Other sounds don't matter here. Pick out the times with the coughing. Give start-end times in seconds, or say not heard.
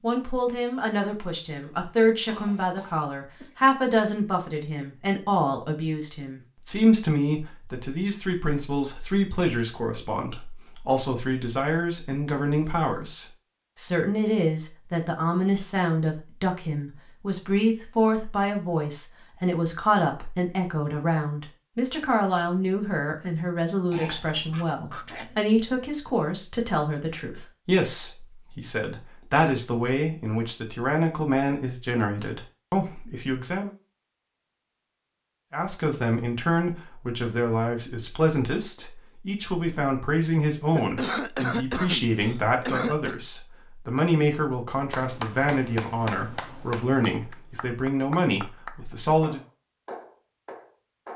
1.6-3.5, 23.9-25.4, 40.8-43.1.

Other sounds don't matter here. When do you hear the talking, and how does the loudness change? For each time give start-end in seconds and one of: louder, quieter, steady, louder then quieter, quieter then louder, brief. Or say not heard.
0.0-33.7 steady
35.5-49.4 steady.